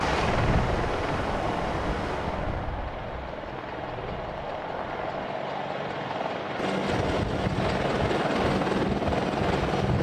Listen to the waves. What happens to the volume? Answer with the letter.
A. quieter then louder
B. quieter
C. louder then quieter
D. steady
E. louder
B.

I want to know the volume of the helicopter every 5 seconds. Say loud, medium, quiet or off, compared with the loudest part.
medium, loud.